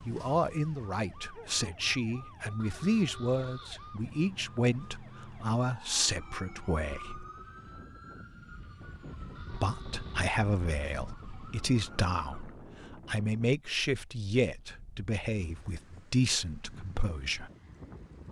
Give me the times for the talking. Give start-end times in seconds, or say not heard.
0.1-7.2, 9.5-17.5.